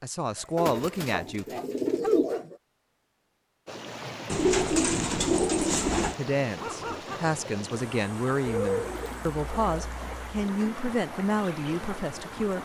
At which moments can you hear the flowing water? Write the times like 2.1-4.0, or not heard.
3.6-12.6.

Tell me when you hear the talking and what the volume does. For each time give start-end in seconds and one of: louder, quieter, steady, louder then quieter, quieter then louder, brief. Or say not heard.
0.0-1.6 brief
6.2-12.6 steady.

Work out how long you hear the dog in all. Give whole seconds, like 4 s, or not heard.
3 s.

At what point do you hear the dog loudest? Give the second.
2 s.